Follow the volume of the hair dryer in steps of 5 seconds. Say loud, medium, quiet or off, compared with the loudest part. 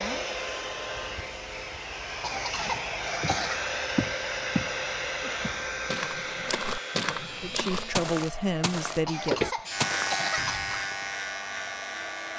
loud, loud, medium.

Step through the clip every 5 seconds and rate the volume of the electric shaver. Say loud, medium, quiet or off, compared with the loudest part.
quiet, medium, loud.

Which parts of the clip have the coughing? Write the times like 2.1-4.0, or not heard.
2.2-3.6, 9.1-10.7.